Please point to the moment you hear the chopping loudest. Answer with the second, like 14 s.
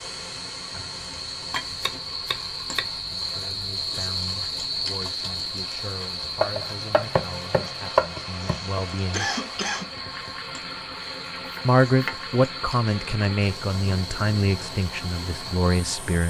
8 s.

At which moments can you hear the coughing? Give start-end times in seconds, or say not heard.
8.4-9.9.